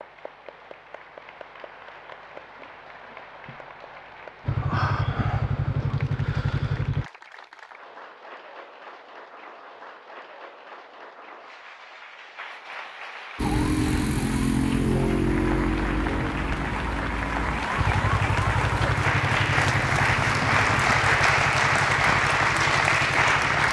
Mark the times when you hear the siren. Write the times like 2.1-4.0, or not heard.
13.3-20.9.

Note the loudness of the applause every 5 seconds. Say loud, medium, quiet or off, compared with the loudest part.
quiet, quiet, quiet, medium, loud.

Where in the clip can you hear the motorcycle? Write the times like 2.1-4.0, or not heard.
4.5-7.1, 17.8-23.6.